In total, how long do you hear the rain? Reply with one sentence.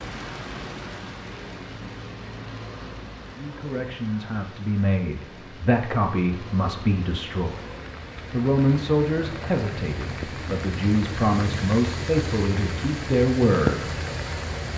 You can hear the rain for 15 seconds altogether.